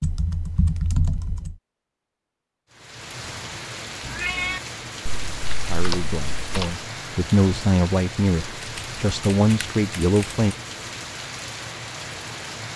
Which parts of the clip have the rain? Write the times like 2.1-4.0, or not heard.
2.7-12.7.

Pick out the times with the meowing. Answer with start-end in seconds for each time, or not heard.
4.0-4.6.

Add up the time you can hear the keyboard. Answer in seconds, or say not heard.
5 s.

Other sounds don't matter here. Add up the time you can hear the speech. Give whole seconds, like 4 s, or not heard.
5 s.